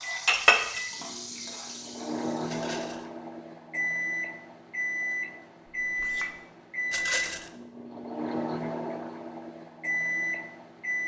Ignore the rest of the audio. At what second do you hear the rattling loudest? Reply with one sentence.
The volume of the rattling peaks at 7 seconds.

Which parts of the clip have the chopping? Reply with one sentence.
You can't hear the chopping here.